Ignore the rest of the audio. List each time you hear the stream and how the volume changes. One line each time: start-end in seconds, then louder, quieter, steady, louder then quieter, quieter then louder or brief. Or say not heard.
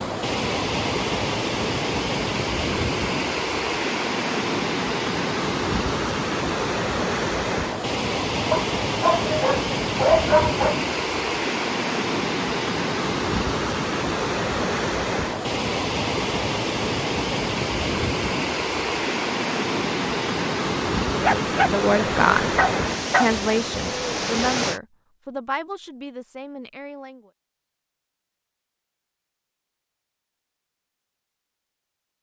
0.0-24.8 steady.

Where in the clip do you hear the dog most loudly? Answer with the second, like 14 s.
10 s.